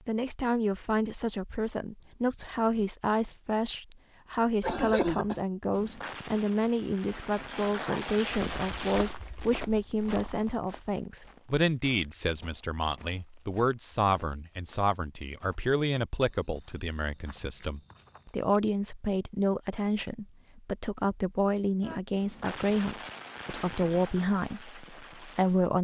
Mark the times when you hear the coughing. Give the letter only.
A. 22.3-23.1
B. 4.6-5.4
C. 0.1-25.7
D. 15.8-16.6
B.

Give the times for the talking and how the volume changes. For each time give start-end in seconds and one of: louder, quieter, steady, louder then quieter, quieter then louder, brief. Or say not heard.
0.1-25.7 steady.